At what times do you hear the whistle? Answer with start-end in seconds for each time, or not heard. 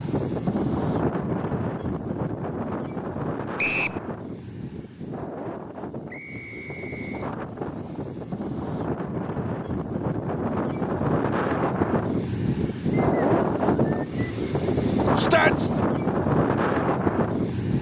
3.5-4.0, 6.1-7.3, 12.9-14.2.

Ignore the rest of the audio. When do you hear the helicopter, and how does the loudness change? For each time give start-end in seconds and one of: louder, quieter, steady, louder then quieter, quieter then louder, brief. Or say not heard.
not heard.